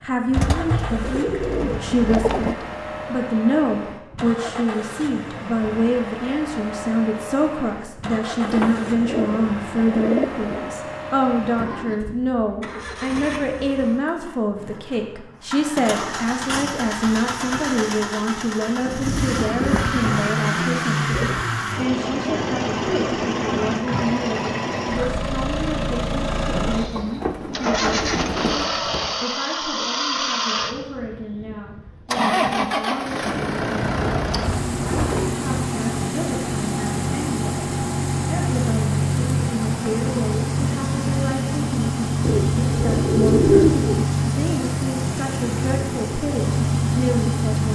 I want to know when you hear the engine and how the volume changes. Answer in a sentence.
You can hear the engine from 0.0 to 47.7 s, getting louder.